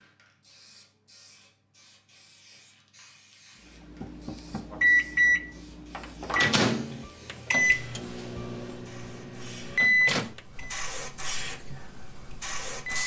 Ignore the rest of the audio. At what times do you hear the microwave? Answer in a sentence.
You can hear the microwave from 4.0 to 13.0 s.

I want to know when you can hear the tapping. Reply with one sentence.
The tapping can be heard from 4.0 to 4.7 s.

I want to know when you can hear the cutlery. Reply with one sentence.
The cutlery can't be heard in this clip.